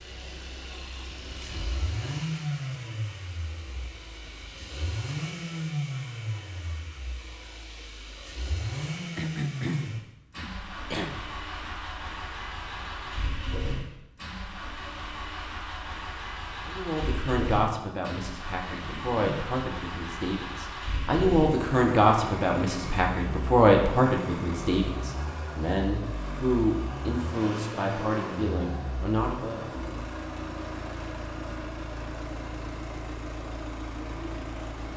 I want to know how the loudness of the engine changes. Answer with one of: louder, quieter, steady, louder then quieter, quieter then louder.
steady.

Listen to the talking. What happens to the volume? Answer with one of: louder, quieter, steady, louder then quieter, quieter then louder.
louder then quieter.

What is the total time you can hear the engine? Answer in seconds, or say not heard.
35 s.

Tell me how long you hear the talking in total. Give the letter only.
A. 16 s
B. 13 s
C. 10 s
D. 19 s
B.